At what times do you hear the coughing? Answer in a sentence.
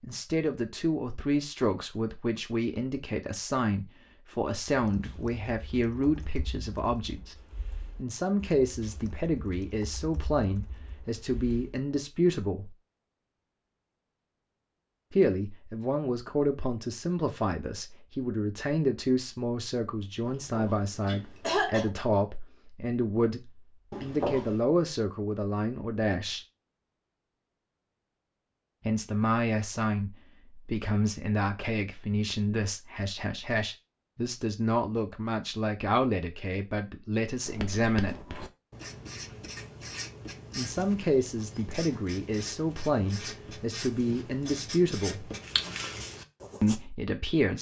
You can hear the coughing from 20.2 to 21.9 s and from 23.9 to 24.6 s.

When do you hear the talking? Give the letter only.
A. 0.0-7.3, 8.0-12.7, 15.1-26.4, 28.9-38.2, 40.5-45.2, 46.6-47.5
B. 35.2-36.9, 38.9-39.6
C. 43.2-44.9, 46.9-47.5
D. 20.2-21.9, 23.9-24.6
A.